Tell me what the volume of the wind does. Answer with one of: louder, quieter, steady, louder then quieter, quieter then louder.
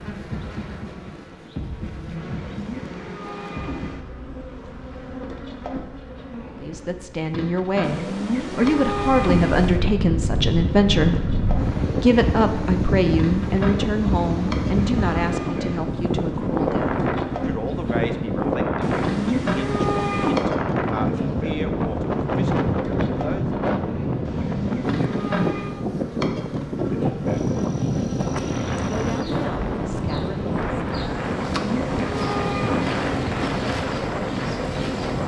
steady.